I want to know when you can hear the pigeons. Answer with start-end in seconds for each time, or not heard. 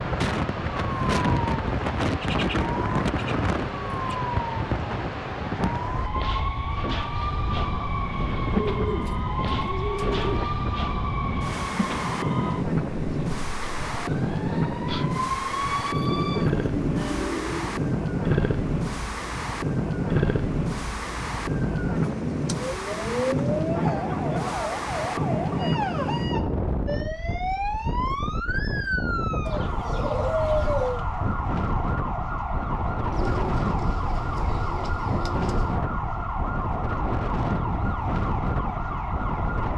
2.2-4.2, 8.7-10.4, 15.9-17.9, 21.9-23.6, 29.4-31.1, 33.1-35.8.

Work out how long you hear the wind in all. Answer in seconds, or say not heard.
40 s.